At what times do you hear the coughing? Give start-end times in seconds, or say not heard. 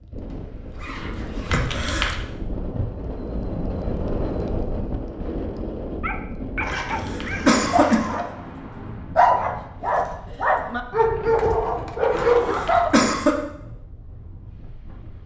1.4-2.2, 6.7-8.2, 12.2-13.3.